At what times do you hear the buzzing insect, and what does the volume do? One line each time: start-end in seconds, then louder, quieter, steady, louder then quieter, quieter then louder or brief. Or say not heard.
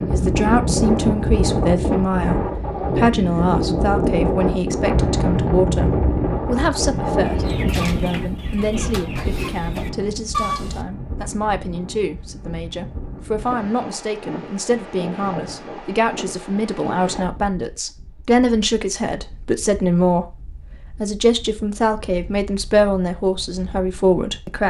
not heard.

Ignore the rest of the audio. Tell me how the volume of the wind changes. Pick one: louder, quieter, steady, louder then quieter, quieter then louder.
quieter.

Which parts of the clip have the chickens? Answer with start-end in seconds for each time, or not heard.
7.2-10.8.